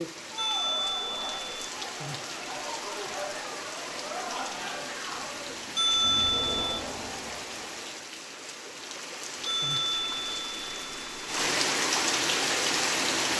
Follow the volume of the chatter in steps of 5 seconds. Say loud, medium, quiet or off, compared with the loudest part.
loud, loud, off.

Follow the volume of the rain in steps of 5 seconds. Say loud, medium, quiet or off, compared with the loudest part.
medium, medium, loud.